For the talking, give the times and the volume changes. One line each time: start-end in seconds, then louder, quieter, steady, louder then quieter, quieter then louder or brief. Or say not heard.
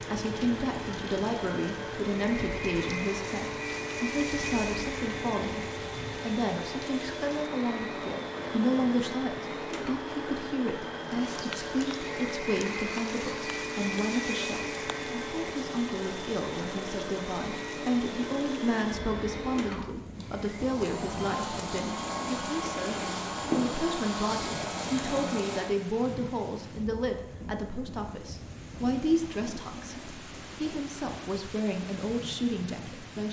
0.1-33.2 steady.